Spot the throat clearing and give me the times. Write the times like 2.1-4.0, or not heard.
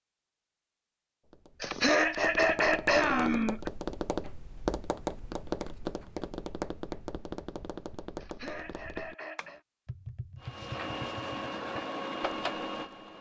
1.6-3.7, 8.2-9.6.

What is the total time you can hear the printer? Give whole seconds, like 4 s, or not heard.
3 s.